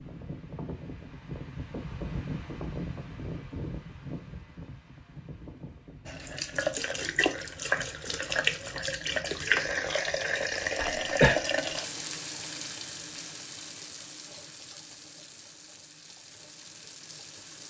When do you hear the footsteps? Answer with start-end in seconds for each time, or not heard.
not heard.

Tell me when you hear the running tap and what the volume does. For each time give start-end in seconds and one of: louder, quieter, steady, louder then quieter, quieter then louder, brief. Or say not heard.
6.0-17.6 quieter.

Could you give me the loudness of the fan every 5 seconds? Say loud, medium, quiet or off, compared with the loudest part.
loud, medium, off, off.